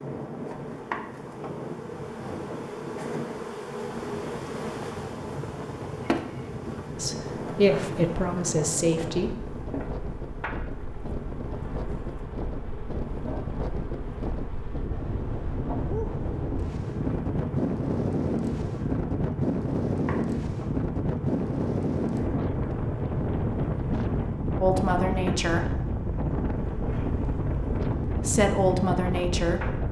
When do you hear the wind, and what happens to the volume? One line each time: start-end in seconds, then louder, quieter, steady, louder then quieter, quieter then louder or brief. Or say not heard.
0.0-29.8 louder.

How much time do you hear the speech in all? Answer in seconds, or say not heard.
5 s.